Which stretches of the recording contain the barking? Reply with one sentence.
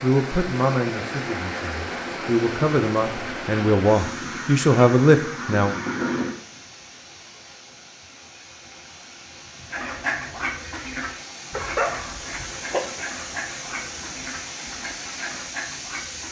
The barking can be heard from 11.5 to 12.8 s.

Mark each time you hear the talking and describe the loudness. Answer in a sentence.
The talking can be heard from 0.0 to 5.8 s, getting louder.